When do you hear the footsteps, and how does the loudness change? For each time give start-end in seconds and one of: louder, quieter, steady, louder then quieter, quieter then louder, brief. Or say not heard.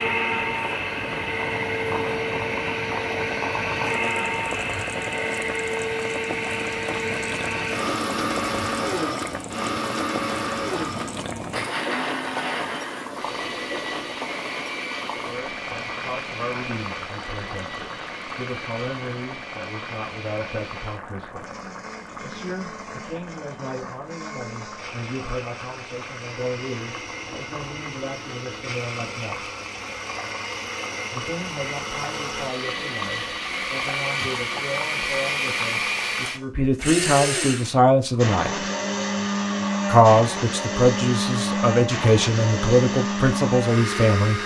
not heard.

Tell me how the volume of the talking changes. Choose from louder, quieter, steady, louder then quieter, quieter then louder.
louder.